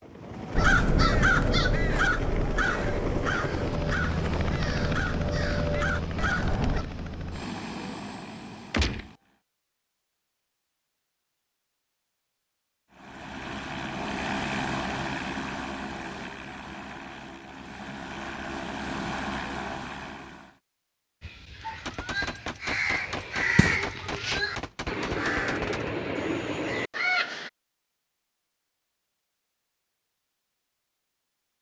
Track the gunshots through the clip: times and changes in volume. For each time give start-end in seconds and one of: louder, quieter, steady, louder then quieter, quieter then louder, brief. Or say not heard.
8.7-9.1 brief
21.9-25.9 steady.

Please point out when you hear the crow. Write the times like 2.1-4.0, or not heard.
0.5-6.8, 21.2-27.5.